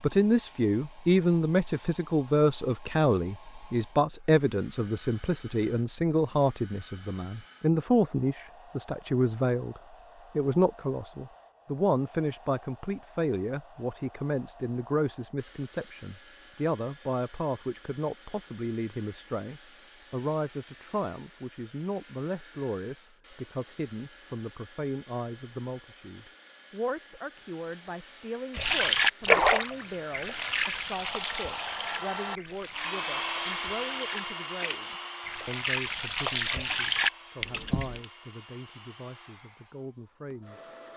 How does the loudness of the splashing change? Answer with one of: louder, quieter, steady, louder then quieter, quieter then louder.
quieter then louder.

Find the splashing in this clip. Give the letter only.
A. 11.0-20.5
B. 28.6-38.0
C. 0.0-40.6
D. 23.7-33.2
B.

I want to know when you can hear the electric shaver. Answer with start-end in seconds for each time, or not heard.
not heard.